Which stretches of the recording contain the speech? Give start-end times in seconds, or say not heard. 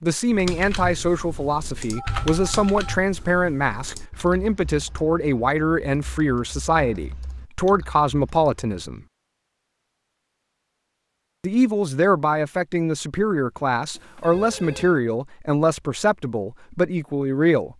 0.0-9.0, 11.4-17.7.